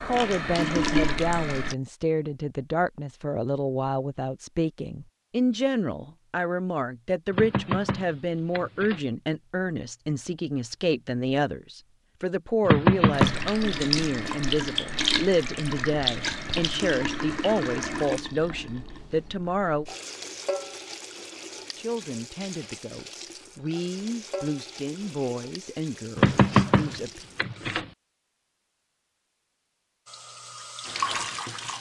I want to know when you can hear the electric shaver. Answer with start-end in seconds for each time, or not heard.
not heard.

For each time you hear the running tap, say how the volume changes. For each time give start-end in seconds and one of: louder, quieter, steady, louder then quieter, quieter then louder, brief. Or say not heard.
0.0-1.8 brief
13.1-27.9 quieter
30.1-31.7 brief.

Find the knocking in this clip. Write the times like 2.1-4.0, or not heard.
7.3-9.0, 12.7-13.5, 26.1-27.9.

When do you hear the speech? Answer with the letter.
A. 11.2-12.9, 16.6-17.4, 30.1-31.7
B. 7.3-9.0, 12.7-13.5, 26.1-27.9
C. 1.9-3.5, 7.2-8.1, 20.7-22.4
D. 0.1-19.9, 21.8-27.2
D.